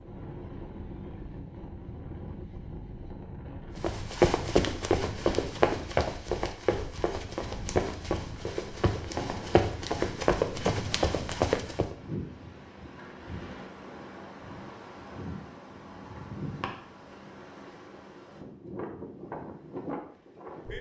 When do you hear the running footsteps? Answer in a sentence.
The running footsteps can be heard from 3.8 to 11.9 s.